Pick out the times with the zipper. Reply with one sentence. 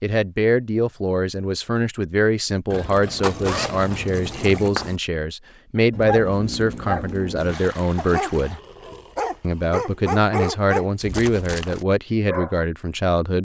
The zipper can be heard from 3.2 to 5.0 s.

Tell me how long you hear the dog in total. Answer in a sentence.
You can hear the dog for 7 seconds altogether.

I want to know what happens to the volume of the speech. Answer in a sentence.
The loudness of the speech stays about the same.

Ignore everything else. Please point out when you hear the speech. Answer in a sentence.
The speech can be heard from 0.0 to 8.6 s and from 9.4 to 13.3 s.